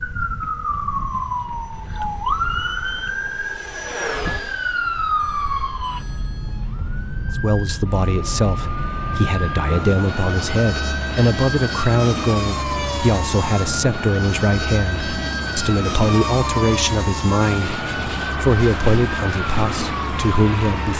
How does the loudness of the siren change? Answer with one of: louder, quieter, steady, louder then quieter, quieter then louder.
steady.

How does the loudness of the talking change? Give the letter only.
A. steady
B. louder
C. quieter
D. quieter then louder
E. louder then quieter
A.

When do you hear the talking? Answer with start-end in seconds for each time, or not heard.
7.3-20.9.